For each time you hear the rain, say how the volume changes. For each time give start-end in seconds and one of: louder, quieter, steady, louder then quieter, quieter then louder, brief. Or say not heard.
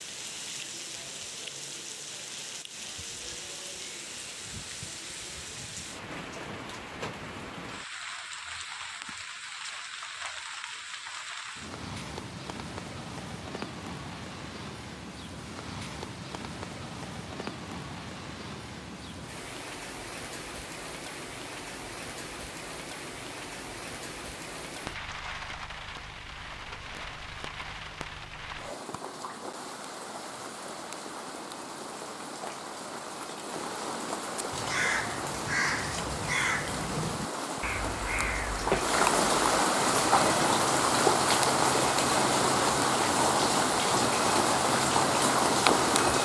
0.0-46.2 louder.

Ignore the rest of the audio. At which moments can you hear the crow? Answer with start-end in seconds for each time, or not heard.
34.5-46.2.